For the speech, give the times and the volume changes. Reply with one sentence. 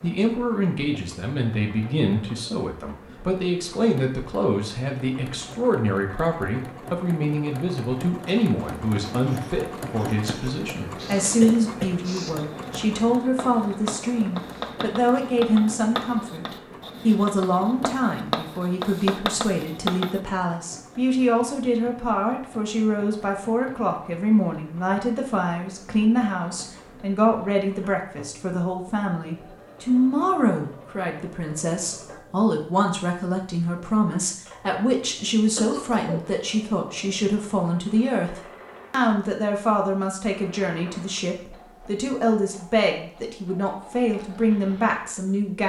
You can hear the speech from 0.0 to 45.6 s, at a steady volume.